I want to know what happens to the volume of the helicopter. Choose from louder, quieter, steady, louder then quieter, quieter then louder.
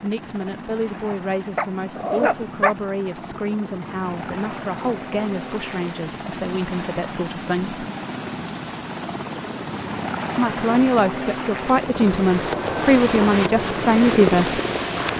louder.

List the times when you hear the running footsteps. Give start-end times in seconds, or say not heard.
not heard.